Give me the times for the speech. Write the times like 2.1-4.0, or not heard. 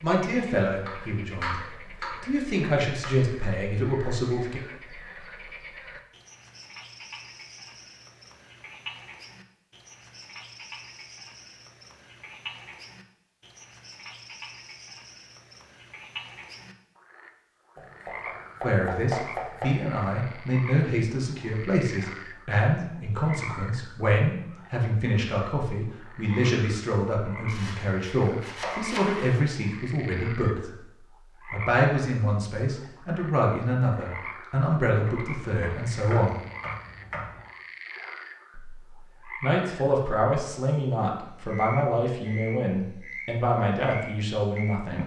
0.0-4.6, 18.6-30.7, 31.5-36.4, 38.5-45.0.